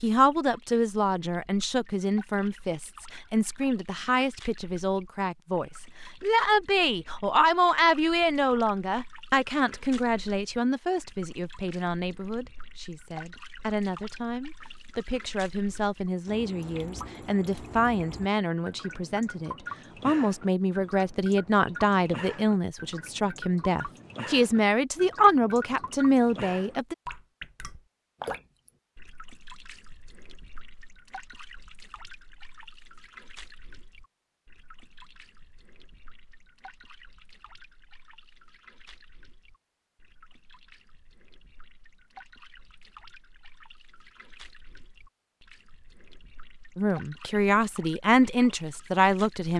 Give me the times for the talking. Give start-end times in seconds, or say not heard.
0.0-26.9, 46.8-49.5.